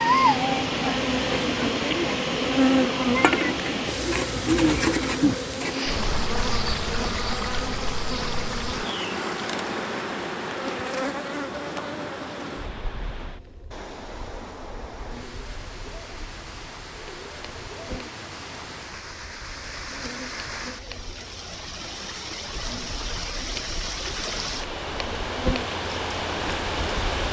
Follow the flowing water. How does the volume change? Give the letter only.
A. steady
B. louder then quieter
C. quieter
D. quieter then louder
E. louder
D.